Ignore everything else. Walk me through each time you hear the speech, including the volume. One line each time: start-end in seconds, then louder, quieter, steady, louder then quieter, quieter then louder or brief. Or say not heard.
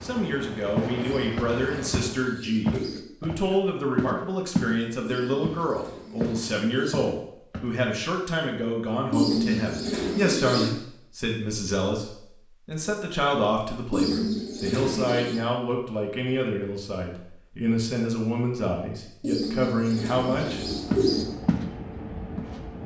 0.0-20.6 steady.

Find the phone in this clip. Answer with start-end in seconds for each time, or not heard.
not heard.